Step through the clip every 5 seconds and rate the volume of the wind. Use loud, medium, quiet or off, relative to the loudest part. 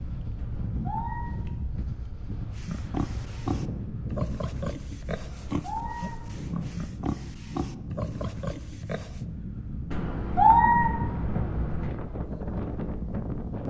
loud, medium, loud.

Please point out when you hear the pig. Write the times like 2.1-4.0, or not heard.
2.5-9.2.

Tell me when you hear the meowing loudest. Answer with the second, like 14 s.
11 s.